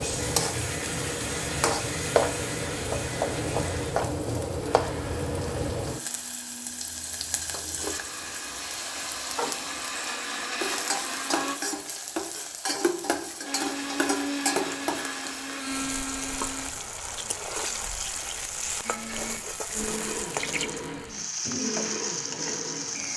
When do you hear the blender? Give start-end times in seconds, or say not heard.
0.0-11.6, 13.4-16.7, 18.8-23.1.